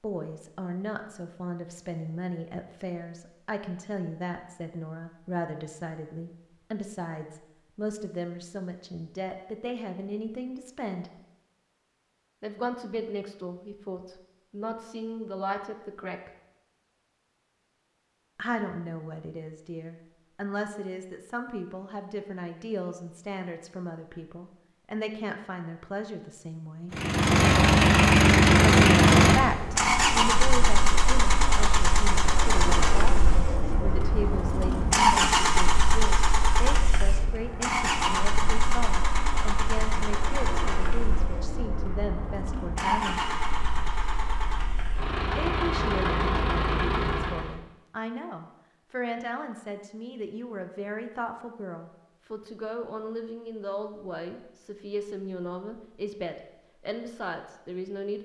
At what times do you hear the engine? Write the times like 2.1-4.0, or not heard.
26.9-47.5.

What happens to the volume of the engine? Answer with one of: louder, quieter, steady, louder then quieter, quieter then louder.
quieter.